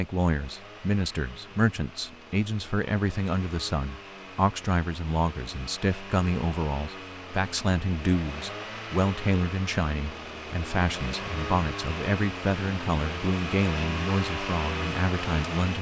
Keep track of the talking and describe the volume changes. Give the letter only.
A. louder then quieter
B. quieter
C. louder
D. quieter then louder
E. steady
E.